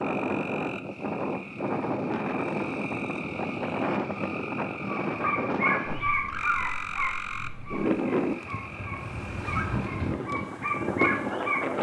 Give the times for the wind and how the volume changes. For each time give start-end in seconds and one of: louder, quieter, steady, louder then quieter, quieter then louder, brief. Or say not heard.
0.0-11.7 steady.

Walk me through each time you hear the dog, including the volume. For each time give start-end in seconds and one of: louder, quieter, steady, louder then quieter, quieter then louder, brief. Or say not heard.
5.0-11.6 quieter then louder.